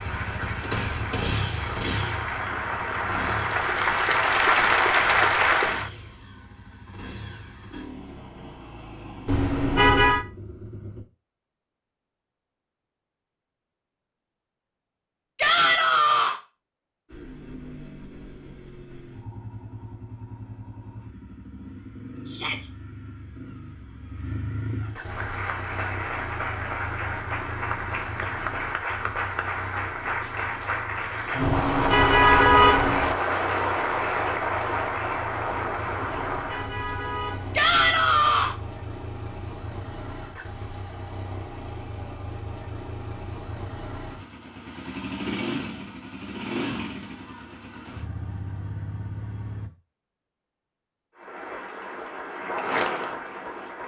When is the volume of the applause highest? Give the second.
5 s.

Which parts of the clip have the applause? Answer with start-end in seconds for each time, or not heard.
0.0-5.9, 25.0-36.8, 51.1-53.8.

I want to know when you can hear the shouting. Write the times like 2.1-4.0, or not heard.
15.3-16.4, 22.2-22.7, 37.5-38.5.